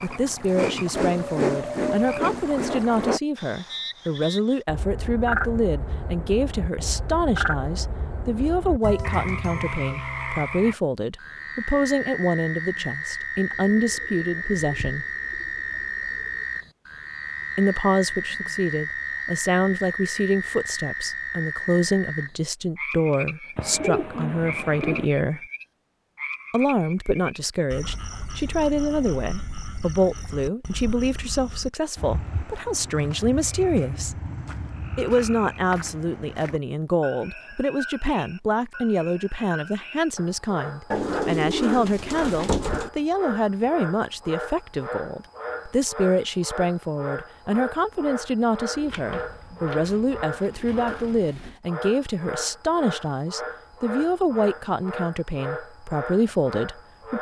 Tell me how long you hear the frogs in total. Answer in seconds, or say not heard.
57 s.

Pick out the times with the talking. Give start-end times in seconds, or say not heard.
0.0-15.1, 17.6-25.4, 26.5-34.1, 35.0-57.1.